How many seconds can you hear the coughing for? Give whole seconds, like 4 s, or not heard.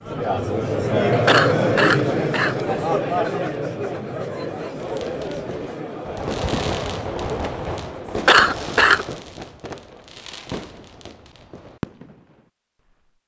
2 s.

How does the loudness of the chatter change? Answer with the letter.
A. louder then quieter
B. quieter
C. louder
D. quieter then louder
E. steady
B.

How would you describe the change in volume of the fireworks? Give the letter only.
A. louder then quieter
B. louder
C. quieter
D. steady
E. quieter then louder
C.